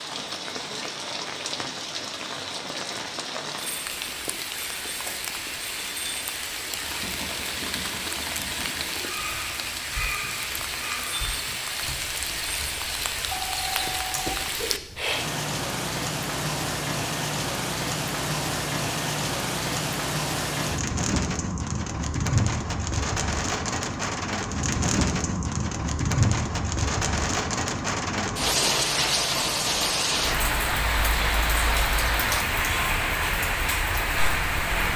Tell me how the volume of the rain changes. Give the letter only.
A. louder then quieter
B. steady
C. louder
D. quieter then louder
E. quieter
C.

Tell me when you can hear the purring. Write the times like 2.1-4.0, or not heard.
not heard.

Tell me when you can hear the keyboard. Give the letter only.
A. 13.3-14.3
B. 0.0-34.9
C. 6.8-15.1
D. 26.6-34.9
C.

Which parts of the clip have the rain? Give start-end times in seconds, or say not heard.
0.0-34.9.